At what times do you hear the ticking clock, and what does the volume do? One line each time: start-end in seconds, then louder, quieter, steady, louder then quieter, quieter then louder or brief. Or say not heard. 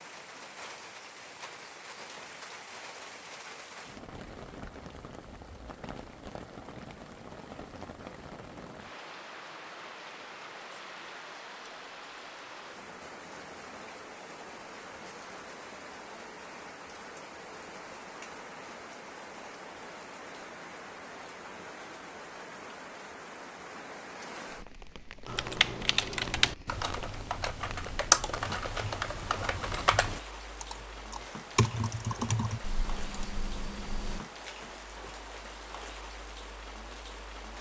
not heard.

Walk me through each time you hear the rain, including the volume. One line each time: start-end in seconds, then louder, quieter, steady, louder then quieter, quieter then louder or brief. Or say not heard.
0.0-37.5 steady.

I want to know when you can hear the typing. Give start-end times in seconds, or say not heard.
25.2-34.2.